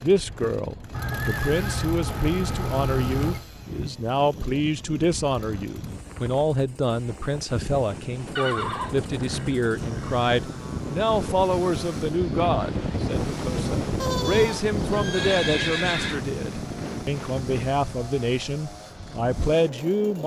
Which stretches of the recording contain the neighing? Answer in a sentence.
You can hear the neighing from 0.9 to 3.5 s, from 8.3 to 10.3 s and from 14.0 to 16.2 s.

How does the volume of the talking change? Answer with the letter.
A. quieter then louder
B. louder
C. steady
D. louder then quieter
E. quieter
C.